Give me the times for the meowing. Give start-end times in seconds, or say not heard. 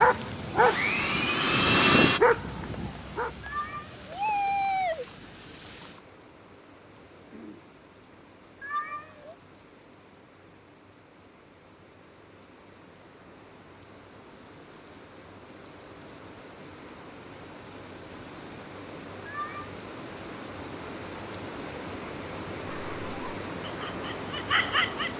3.4-5.0, 8.6-9.3, 19.2-19.7.